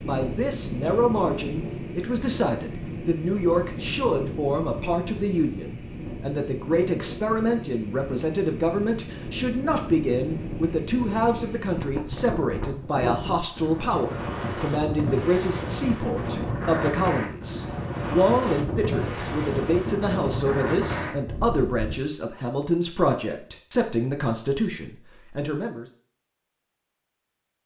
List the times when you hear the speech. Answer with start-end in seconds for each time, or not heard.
0.1-25.9.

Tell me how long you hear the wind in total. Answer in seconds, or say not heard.
22 s.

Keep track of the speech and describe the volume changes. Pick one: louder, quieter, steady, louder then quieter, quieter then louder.
steady.